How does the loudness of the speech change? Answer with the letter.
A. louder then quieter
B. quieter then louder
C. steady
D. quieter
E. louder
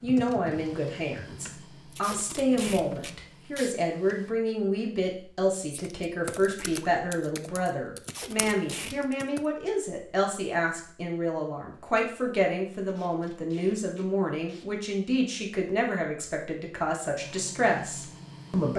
C.